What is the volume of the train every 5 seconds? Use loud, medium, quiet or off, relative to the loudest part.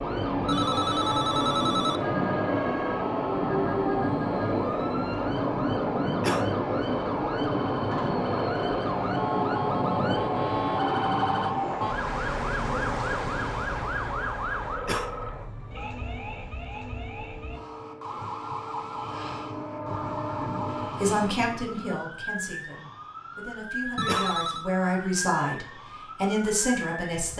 loud, loud, loud, quiet, medium, off.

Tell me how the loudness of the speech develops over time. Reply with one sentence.
The volume of the speech goes down, then up.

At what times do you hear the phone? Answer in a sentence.
You can hear the phone from 0.5 to 2.0 s and from 23.9 to 24.6 s.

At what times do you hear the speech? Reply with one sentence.
The speech can be heard from 20.9 to 27.3 s.